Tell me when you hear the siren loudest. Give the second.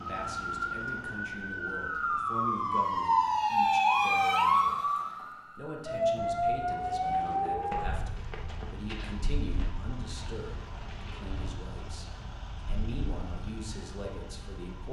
4 s.